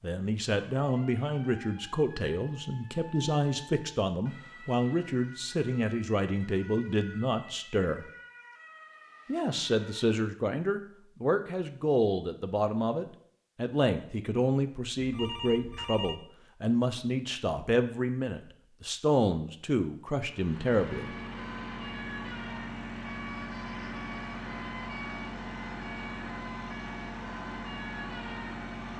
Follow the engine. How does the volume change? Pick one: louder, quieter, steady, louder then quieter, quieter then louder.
steady.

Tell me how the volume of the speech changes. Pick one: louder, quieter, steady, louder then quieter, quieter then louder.
steady.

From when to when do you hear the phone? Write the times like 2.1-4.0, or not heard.
14.9-16.1.